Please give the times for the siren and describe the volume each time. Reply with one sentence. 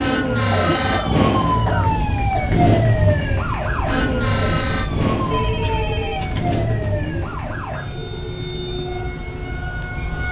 You can hear the siren from 0.0 to 10.2 s, getting quieter.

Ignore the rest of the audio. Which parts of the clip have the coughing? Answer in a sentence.
The coughing can be heard from 0.5 to 2.7 s and from 5.6 to 6.9 s.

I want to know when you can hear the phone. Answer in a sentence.
The phone can be heard from 0.7 to 2.1 s and from 5.3 to 6.9 s.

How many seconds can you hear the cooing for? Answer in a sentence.
The cooing can be heard for 2 seconds in total.